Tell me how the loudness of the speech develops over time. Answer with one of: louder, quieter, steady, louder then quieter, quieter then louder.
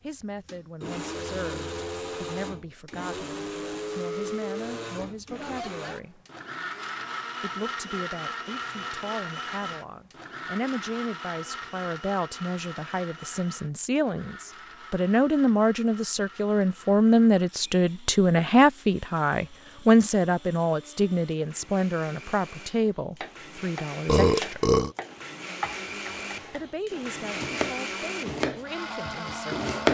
louder then quieter.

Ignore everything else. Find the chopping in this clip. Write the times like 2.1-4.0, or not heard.
23.2-26.6, 27.4-29.8.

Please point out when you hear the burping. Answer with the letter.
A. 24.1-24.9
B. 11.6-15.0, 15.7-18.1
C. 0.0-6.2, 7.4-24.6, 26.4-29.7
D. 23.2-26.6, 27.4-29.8
A.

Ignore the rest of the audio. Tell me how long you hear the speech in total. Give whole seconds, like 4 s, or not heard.
27 s.